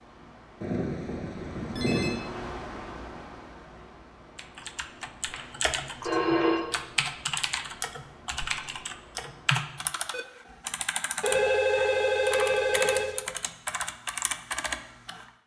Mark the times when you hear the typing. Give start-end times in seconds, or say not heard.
4.3-15.2.